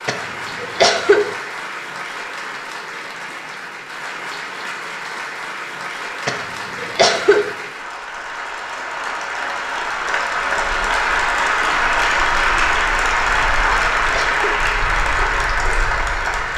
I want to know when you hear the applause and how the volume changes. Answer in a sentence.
You can hear the applause from 0.0 to 16.5 s, getting louder.